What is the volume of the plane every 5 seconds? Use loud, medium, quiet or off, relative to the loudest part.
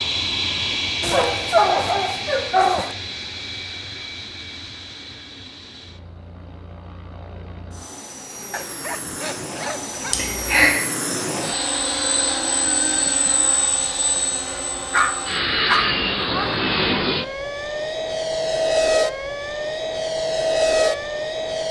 medium, quiet, medium, loud, loud.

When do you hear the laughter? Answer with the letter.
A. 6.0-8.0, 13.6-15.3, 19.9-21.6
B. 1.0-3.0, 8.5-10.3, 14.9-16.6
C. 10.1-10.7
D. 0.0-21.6
C.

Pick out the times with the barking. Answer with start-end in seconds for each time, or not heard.
1.0-3.0, 8.5-10.3, 14.9-16.6.